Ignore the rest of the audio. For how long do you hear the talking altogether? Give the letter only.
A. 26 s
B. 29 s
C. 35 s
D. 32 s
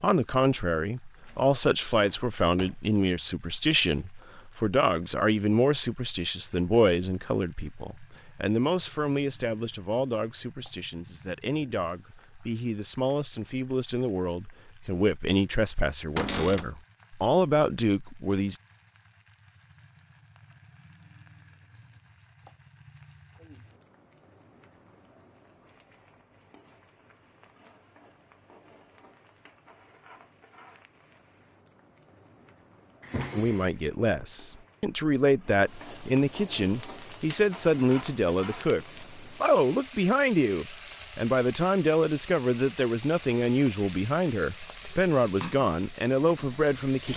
D.